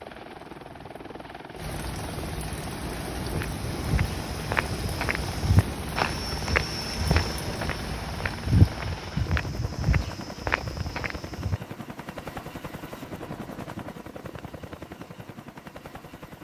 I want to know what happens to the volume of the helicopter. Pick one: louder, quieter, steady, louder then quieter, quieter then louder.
steady.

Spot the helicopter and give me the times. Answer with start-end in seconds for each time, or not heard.
0.0-16.3.